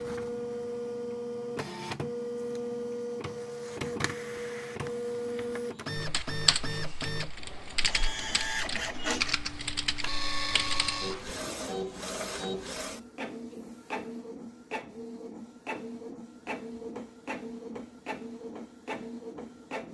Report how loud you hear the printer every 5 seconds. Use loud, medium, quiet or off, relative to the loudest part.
loud, loud, loud, medium.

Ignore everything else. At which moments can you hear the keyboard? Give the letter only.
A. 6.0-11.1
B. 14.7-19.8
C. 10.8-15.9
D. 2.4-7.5
A.